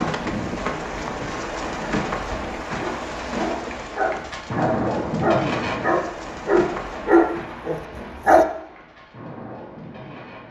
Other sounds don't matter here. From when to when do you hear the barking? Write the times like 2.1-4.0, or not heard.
0.9-1.4, 2.2-8.4.